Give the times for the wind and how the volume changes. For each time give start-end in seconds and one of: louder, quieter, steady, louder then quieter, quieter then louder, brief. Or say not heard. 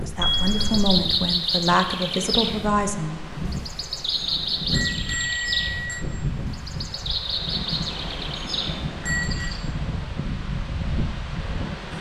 0.0-11.9 louder.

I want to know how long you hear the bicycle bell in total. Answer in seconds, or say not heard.
4 s.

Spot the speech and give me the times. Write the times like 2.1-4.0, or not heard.
0.0-3.2.